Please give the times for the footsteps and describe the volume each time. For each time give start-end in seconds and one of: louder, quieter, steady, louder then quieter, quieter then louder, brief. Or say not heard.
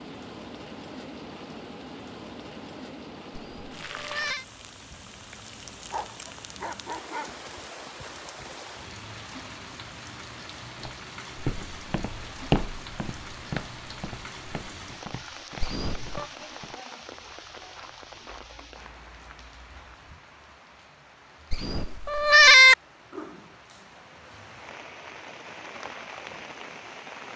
10.8-20.2 quieter.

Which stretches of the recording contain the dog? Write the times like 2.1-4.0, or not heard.
5.9-7.4.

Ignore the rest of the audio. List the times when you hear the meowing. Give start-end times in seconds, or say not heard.
3.3-4.5, 15.6-16.3, 21.5-22.8.